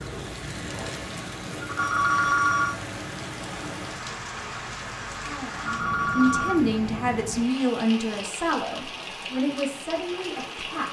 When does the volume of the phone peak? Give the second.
2 s.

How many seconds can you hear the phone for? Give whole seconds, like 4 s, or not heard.
2 s.